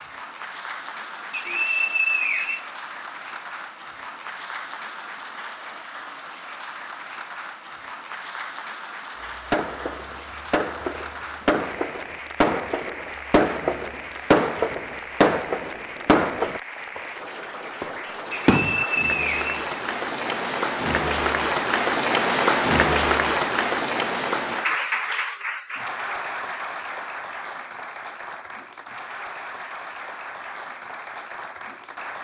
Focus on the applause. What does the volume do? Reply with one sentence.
The loudness of the applause goes up, then down.